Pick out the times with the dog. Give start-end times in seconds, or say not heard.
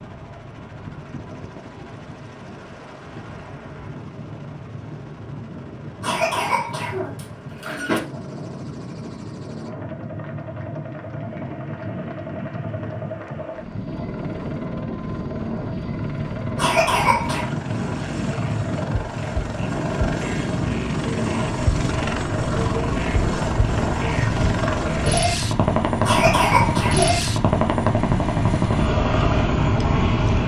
not heard.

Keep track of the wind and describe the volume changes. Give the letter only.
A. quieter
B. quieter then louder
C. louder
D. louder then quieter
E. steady
C.